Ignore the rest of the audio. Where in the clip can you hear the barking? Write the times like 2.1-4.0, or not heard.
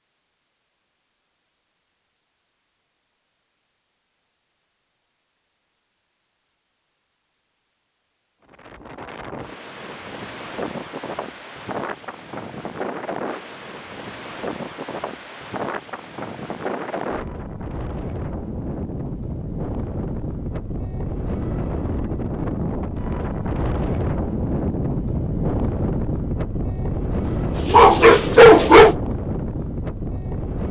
27.6-28.9.